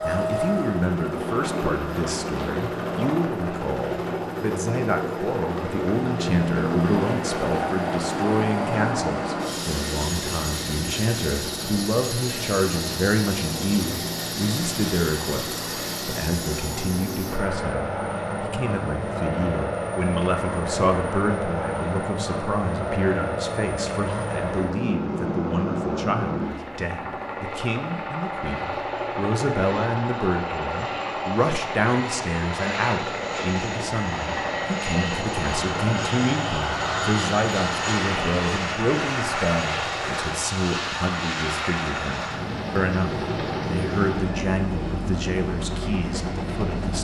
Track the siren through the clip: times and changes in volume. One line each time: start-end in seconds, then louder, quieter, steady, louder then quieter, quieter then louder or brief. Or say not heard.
not heard.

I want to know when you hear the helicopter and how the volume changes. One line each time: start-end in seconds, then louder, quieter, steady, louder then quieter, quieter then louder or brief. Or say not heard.
0.0-47.0 steady.